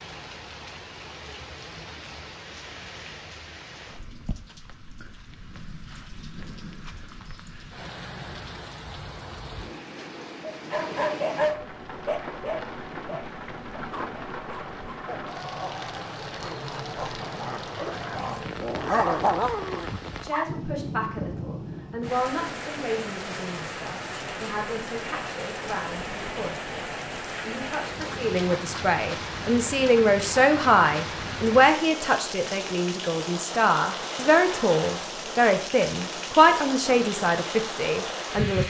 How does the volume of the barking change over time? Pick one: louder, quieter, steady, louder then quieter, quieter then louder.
quieter then louder.